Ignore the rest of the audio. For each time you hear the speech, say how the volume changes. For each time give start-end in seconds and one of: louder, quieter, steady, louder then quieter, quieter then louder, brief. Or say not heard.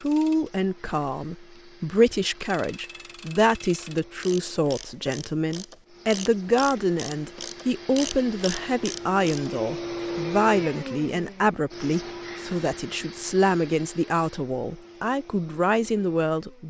0.0-16.6 steady.